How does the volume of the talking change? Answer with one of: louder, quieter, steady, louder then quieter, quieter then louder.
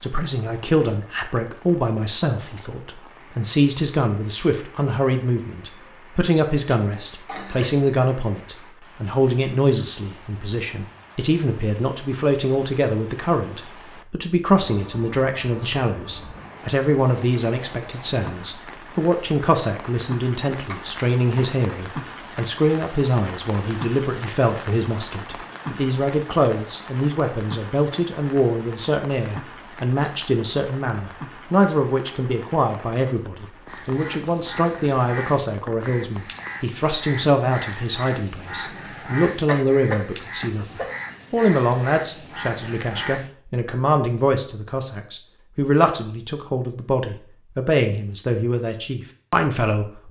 steady.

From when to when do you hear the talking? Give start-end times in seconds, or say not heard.
0.0-50.0.